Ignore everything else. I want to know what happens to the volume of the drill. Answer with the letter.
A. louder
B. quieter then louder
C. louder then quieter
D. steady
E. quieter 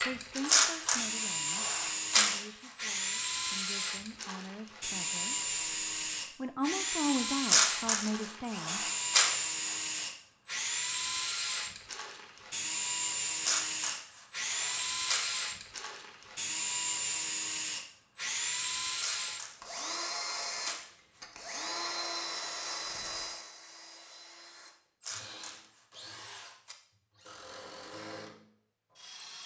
E.